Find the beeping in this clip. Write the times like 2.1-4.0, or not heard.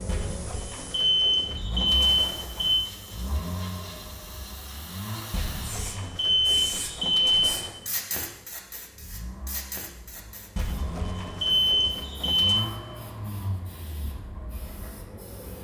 0.1-2.9, 5.3-7.8, 10.6-12.7.